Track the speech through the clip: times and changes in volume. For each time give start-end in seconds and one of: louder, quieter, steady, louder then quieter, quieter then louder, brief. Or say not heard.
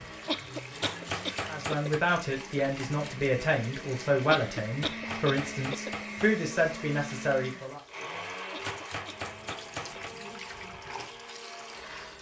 1.4-7.8 steady.